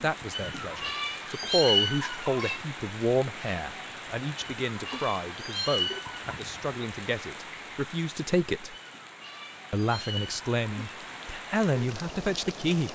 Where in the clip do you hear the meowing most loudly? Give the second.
2 s.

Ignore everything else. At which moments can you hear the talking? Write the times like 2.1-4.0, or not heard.
0.0-8.8, 9.7-12.8.